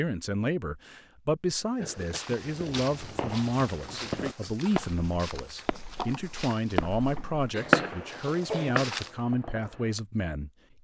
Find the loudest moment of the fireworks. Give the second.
8 s.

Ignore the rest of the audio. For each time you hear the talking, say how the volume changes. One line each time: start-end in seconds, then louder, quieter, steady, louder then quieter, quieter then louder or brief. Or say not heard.
0.0-10.5 steady.